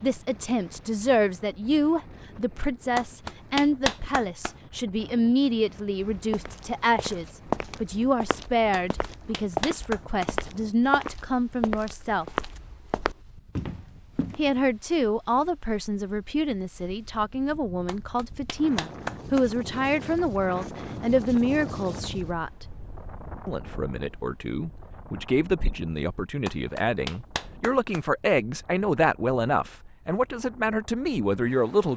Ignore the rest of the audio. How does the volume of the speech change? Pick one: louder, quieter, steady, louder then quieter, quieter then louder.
steady.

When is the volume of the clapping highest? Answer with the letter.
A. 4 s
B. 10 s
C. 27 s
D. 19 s
A.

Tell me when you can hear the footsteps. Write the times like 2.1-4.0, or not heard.
6.1-14.6.